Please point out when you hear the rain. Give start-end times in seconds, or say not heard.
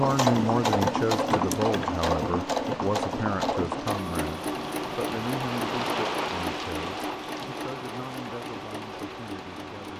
0.0-9.9.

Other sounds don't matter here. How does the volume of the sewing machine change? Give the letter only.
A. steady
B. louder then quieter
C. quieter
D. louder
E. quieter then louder
C.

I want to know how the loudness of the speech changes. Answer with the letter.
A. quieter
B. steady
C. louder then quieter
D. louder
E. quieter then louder
A.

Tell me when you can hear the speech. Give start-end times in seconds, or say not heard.
0.0-9.9.